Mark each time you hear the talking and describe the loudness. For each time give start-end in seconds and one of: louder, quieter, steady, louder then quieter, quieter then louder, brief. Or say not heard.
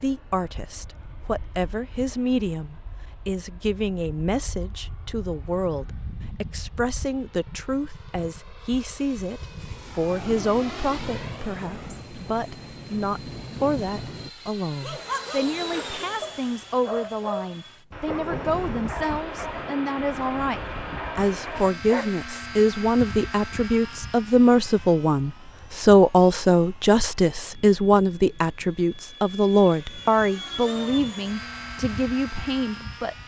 0.0-33.1 louder.